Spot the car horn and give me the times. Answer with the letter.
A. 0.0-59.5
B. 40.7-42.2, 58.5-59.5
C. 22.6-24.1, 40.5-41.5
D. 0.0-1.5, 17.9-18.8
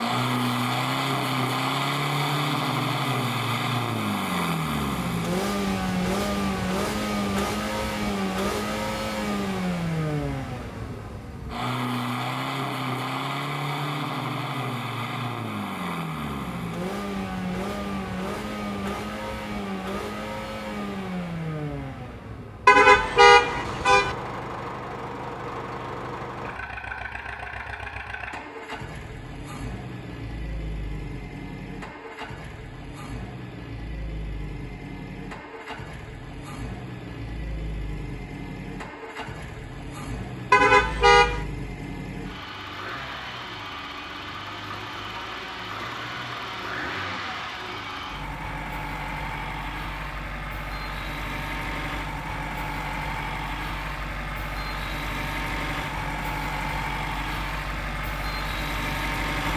C.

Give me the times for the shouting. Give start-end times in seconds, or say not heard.
not heard.